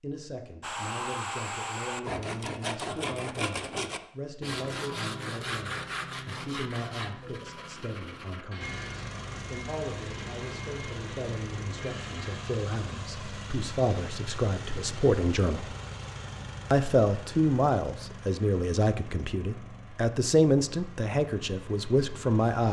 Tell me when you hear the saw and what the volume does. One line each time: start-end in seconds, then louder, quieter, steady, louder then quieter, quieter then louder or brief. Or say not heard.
0.6-12.4 quieter.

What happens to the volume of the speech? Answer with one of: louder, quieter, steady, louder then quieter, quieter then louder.
louder.